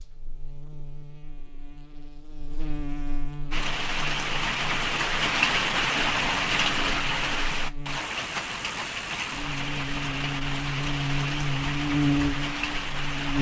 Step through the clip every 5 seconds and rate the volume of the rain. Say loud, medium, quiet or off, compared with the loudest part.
loud, loud, medium.